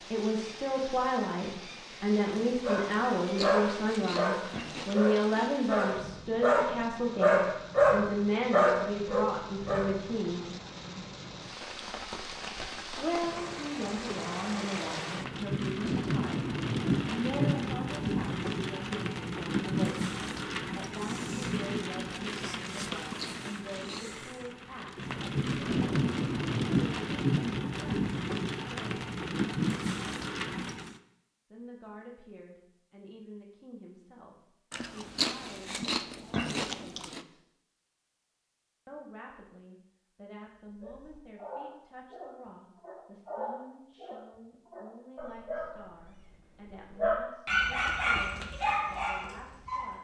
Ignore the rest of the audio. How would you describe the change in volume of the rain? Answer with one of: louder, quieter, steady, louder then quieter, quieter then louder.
louder.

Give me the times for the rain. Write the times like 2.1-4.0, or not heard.
0.0-31.0.